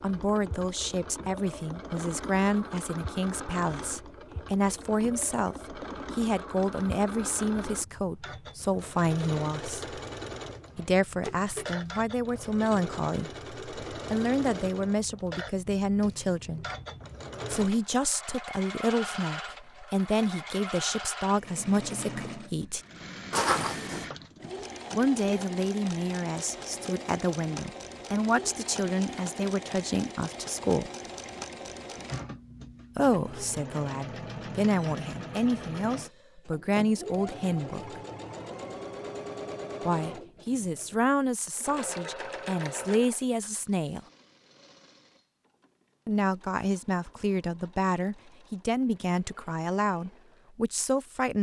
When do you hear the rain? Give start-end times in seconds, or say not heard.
not heard.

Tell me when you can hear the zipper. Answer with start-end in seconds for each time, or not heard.
23.3-24.1.